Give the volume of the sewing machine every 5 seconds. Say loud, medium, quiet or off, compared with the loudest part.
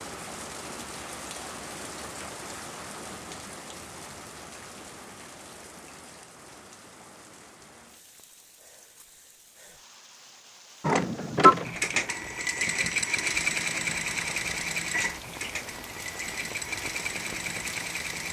off, off, loud, medium.